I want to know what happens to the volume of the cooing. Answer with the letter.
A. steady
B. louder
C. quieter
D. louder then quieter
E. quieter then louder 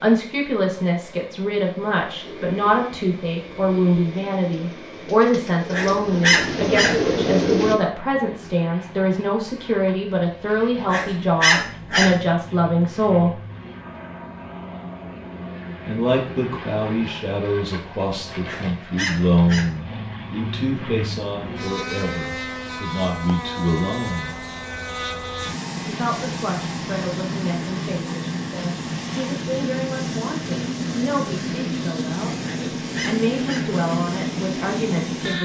B.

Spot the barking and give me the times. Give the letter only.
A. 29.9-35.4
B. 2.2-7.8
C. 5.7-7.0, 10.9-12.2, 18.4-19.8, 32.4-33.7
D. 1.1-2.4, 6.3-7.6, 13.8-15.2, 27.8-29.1
C.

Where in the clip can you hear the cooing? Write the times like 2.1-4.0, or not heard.
2.2-7.8.